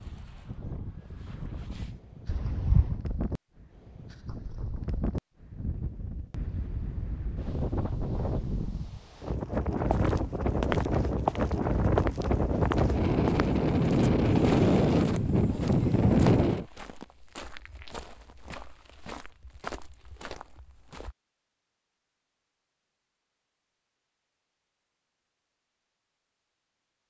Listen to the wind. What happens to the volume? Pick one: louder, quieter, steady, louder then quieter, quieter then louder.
louder.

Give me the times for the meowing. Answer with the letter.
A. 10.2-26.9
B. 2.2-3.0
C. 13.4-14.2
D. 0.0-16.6
B.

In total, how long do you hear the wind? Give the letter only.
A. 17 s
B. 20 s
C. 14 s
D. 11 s
A.